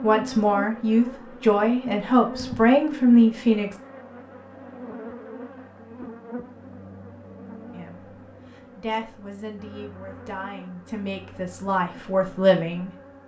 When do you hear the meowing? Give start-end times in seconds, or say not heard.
not heard.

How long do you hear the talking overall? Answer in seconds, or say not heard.
9 s.